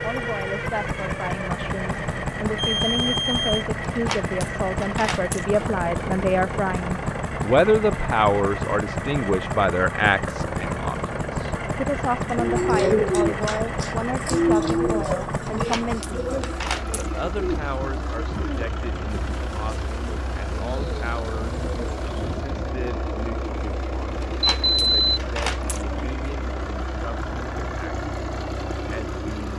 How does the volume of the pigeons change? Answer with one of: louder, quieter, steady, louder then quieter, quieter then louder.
quieter.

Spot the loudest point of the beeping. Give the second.
25 s.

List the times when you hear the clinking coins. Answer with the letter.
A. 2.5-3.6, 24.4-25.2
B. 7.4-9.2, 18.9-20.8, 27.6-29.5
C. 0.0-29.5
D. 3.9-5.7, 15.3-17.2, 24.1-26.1
D.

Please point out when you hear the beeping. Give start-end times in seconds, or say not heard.
2.5-3.6, 24.4-25.2.